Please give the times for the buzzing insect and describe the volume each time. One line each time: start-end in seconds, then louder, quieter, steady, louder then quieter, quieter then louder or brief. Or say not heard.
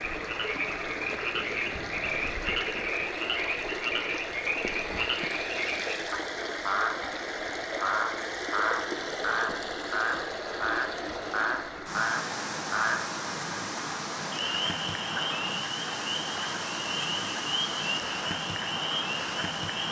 not heard.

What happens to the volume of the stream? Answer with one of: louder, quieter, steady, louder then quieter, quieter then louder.
steady.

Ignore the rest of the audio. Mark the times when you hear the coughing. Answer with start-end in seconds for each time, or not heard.
not heard.